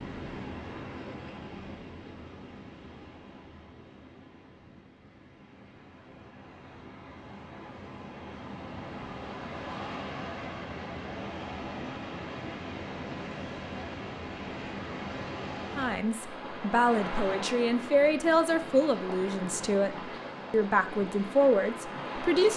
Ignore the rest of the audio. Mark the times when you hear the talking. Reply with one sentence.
You can hear the talking from 15.8 to 22.5 s.